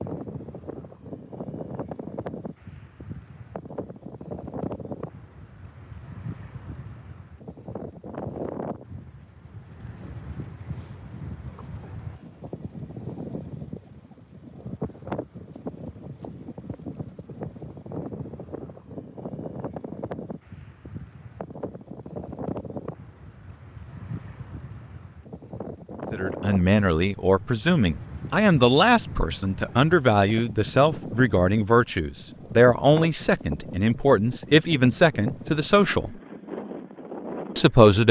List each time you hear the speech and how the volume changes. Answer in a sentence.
The speech can be heard from 26.1 to 36.1 s, at a steady volume; and briefly from 37.5 to 38.0 s.